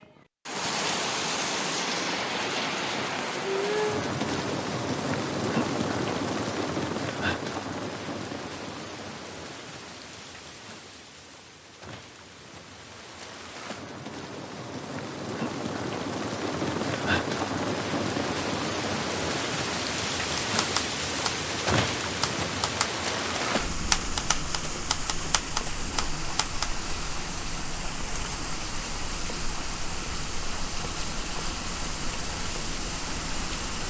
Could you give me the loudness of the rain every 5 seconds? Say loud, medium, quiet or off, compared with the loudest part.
loud, loud, quiet, loud, loud, medium, medium.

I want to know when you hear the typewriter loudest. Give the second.
24 s.